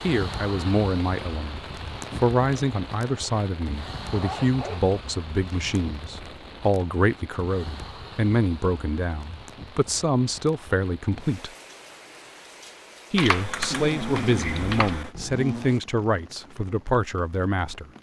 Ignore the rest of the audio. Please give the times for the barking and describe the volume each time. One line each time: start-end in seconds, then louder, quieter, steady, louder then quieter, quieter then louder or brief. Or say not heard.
not heard.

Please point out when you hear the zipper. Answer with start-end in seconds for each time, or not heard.
4.0-5.8, 13.7-15.8.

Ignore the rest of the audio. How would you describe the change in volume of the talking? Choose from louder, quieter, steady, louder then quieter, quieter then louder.
steady.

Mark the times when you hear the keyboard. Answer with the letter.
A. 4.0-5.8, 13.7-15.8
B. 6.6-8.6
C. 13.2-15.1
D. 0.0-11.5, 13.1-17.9
C.